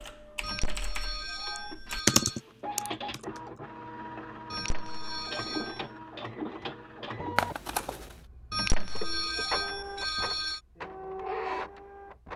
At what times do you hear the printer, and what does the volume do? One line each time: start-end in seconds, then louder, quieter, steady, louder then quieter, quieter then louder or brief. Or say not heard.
0.0-12.3 louder.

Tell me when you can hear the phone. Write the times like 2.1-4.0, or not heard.
0.4-2.4, 4.5-5.8, 8.5-10.6.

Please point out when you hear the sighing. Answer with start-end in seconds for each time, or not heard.
not heard.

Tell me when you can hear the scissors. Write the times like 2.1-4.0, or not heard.
7.3-8.2.